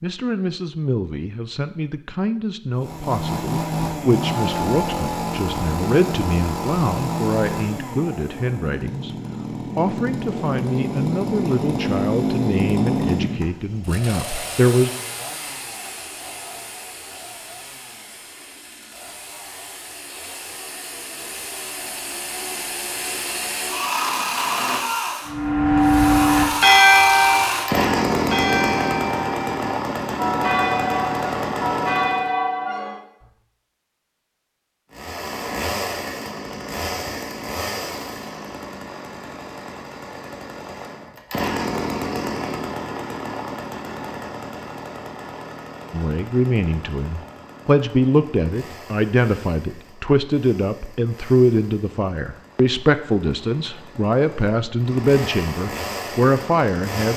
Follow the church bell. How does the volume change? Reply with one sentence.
The volume of the church bell goes down.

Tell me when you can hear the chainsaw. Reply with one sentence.
You can hear the chainsaw from 2.8 to 32.3 s and from 34.9 to 57.1 s.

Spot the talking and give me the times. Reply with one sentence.
The talking can be heard from 0.0 to 9.2 s, from 9.8 to 14.9 s and from 45.9 to 57.1 s.